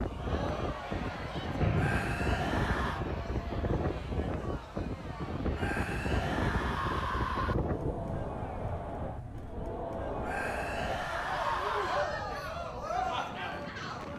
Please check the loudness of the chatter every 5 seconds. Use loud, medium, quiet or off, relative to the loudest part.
medium, medium, loud.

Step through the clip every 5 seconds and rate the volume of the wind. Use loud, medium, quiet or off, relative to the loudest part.
loud, loud, medium.